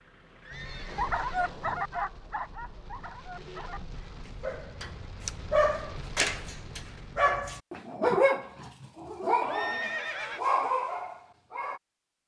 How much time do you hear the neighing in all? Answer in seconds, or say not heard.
2 s.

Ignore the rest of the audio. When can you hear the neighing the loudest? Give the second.
10 s.